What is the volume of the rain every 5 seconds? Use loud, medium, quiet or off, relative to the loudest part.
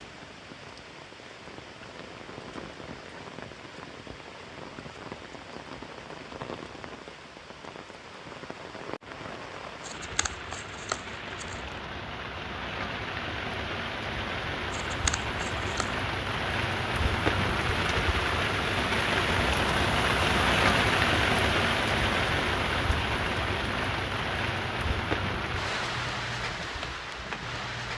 quiet, quiet, medium, loud, loud, medium.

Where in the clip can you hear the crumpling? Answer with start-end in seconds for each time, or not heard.
9.8-11.8, 14.7-15.9.